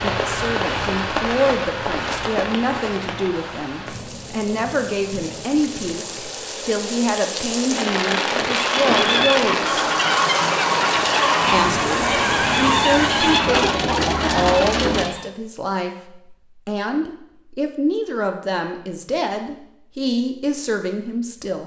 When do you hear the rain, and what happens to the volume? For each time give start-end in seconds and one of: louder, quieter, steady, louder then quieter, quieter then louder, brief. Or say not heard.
0.0-15.1 quieter then louder.